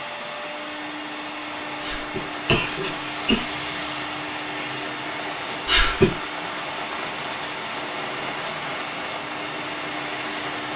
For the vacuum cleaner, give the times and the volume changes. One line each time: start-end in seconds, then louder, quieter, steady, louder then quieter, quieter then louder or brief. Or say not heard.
0.0-10.7 steady.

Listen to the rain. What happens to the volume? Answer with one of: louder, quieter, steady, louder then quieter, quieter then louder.
steady.